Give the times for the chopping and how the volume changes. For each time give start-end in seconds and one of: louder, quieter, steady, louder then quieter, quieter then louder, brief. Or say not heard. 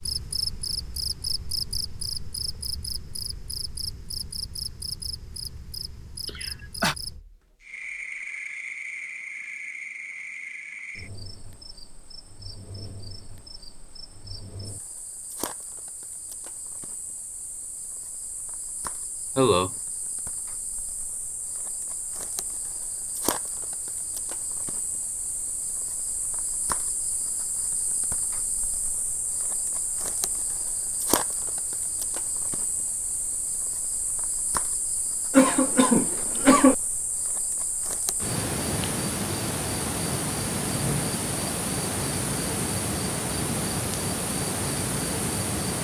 not heard.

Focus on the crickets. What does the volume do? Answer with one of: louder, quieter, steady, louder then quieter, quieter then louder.
quieter then louder.